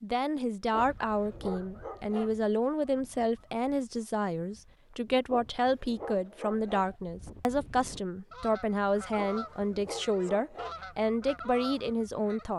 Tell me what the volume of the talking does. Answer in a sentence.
The volume of the talking stays about the same.